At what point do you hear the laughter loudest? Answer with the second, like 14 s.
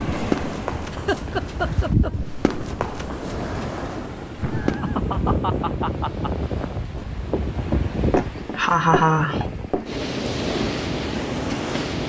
9 s.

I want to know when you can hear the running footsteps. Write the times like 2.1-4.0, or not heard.
0.1-4.8, 7.0-9.9.